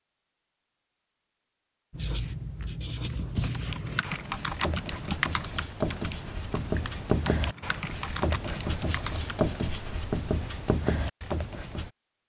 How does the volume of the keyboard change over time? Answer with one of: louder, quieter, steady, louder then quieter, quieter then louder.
quieter then louder.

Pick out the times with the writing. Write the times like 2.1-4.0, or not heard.
1.9-11.9.